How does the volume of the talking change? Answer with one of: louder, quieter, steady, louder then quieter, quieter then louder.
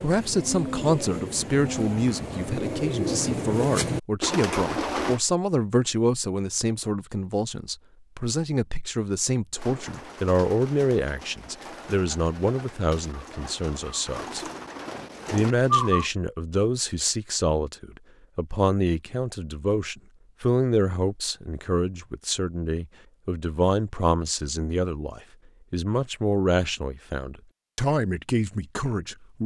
steady.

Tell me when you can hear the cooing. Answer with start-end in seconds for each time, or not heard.
0.0-5.2, 9.6-16.1.